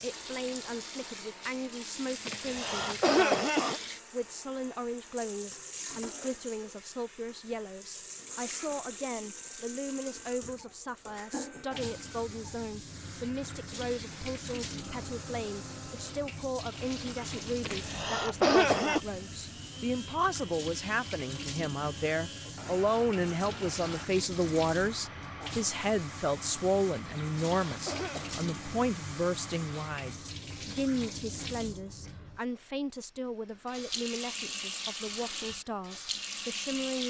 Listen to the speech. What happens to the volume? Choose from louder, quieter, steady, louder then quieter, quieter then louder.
louder then quieter.